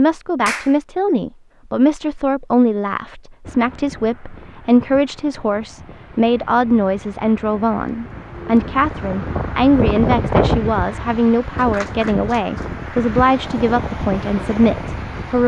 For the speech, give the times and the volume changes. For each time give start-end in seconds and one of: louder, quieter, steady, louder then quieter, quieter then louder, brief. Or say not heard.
0.0-15.4 steady.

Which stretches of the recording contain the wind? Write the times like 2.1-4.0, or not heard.
3.5-15.4.